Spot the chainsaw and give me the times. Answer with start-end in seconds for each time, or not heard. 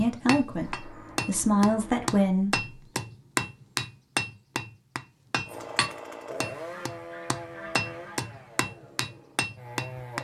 5.5-10.2.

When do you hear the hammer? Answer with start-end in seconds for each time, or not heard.
0.0-10.2.